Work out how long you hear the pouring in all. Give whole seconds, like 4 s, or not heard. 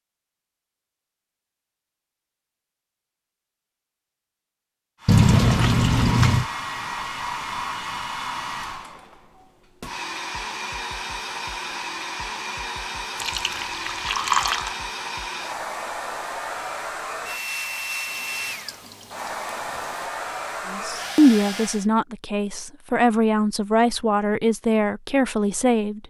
5 s.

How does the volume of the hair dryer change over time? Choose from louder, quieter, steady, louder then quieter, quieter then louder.
steady.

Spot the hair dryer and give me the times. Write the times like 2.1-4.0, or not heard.
5.0-21.9.